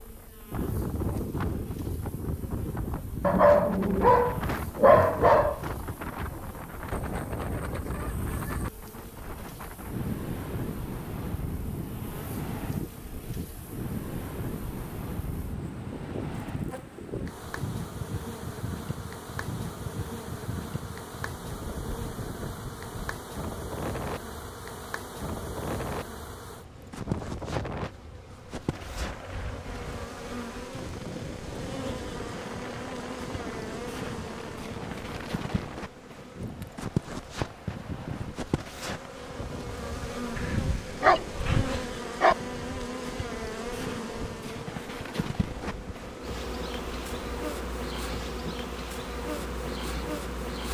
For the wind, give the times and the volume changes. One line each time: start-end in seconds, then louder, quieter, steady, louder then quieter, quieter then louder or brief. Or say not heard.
0.1-50.6 quieter.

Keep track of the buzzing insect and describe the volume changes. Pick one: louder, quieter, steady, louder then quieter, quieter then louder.
louder.